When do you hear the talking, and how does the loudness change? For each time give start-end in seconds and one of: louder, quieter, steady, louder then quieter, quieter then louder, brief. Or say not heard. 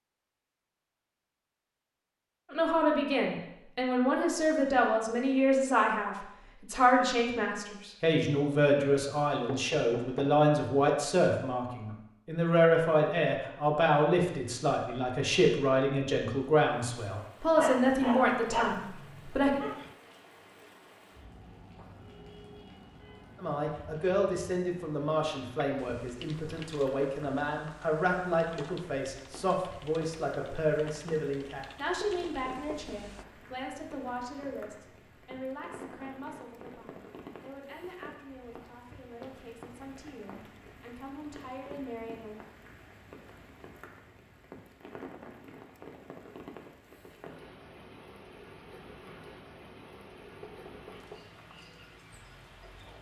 2.5-19.6 steady
23.4-42.4 quieter.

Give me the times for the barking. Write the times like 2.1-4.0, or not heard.
17.6-19.9.